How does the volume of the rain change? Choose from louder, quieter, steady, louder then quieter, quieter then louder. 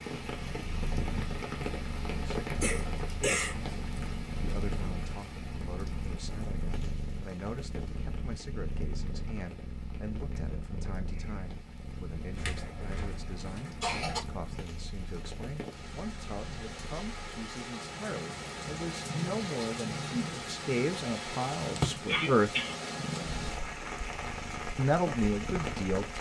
quieter then louder.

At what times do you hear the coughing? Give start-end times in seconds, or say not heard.
2.6-4.0, 12.3-14.2, 22.1-22.8.